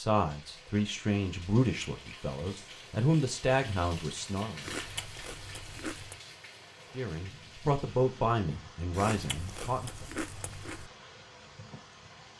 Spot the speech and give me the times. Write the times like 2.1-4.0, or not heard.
0.0-4.7, 6.9-10.1.